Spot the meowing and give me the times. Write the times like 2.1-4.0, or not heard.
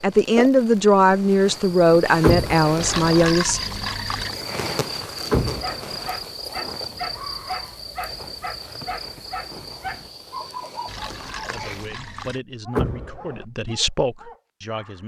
not heard.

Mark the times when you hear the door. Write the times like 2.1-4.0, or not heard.
2.2-2.7, 5.3-6.0, 12.8-13.4.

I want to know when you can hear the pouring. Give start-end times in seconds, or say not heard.
2.8-4.4, 10.8-12.4.